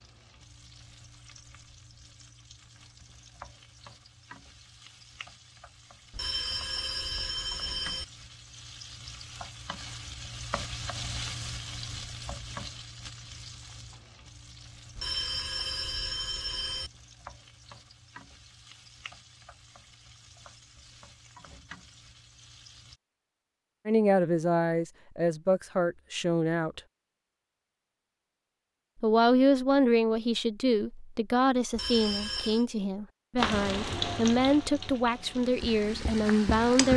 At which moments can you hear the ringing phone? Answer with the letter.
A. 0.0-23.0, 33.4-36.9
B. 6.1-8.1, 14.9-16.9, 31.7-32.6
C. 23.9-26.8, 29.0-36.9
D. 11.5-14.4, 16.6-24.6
B.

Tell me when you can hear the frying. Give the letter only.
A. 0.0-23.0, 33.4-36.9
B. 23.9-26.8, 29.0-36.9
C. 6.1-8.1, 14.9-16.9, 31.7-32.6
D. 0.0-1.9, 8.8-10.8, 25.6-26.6
A.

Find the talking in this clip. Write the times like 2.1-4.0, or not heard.
23.9-26.8, 29.0-36.9.